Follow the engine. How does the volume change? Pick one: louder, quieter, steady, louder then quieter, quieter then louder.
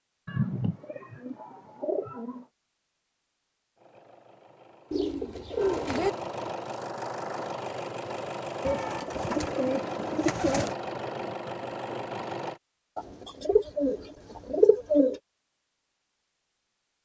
louder.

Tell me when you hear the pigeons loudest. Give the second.
15 s.